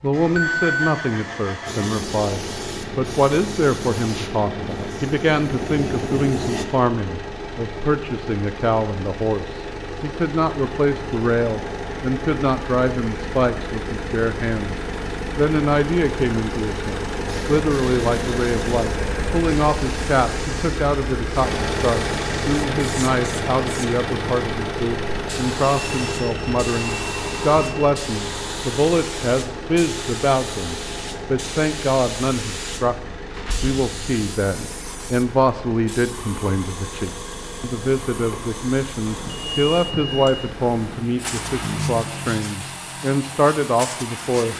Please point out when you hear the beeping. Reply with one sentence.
The beeping can be heard from 0.2 to 0.9 s, from 25.9 to 27.8 s and from 39.0 to 41.0 s.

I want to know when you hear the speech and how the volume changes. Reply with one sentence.
The speech can be heard from 0.0 to 44.5 s, at a steady volume.